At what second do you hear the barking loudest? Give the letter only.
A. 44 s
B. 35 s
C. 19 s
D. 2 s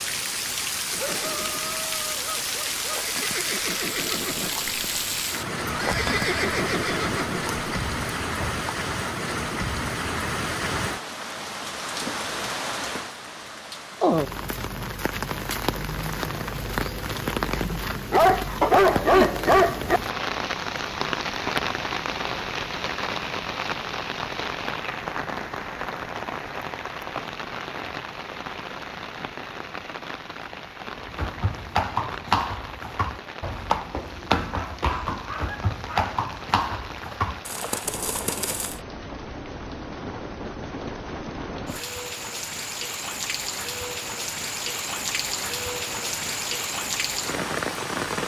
C.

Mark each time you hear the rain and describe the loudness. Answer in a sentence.
The rain can be heard from 0.0 to 48.2 s, getting quieter then louder.